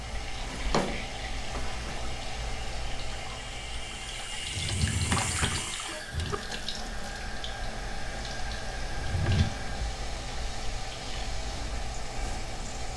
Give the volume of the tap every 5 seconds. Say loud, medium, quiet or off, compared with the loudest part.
loud, loud, medium.